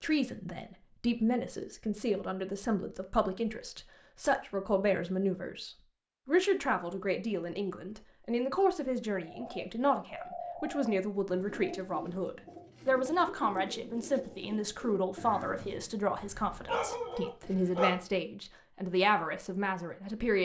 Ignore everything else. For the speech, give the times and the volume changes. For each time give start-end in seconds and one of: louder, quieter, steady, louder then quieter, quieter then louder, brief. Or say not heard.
0.0-20.3 steady.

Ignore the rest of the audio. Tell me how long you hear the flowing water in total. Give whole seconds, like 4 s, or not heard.
not heard.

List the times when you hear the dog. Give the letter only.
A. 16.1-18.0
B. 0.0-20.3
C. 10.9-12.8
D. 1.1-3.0
A.